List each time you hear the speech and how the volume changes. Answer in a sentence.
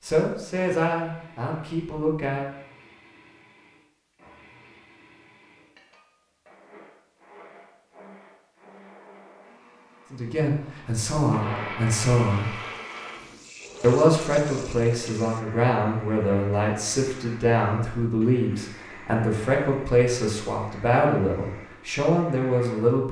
You can hear the speech briefly from 0.1 to 2.5 s; briefly from 10.1 to 12.6 s; and from 13.8 to 23.0 s, at a steady volume.